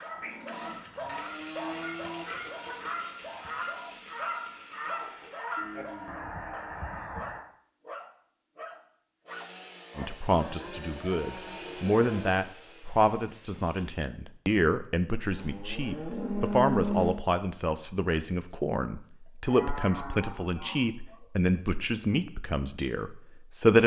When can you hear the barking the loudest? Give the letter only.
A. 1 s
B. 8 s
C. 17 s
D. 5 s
A.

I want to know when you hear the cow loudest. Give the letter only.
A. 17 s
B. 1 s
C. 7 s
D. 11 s
A.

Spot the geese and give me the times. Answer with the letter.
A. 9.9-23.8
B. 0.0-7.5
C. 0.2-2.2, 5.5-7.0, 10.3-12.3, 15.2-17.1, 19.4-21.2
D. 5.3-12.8
B.